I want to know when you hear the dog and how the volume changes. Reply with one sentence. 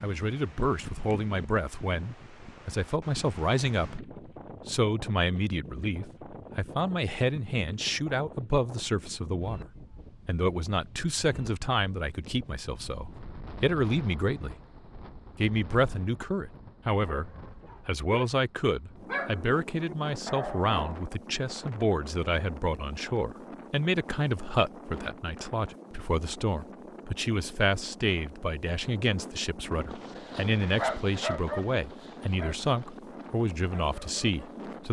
The dog can be heard briefly from 17.1 to 18.2 s; briefly from 19.1 to 21.0 s; and from 29.9 to 34.6 s, getting quieter then louder.